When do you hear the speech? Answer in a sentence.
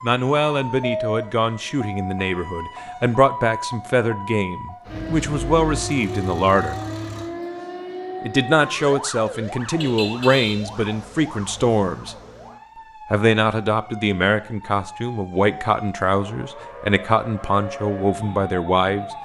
You can hear the speech from 0.0 to 6.8 s, from 8.2 to 12.2 s and from 13.1 to 19.1 s.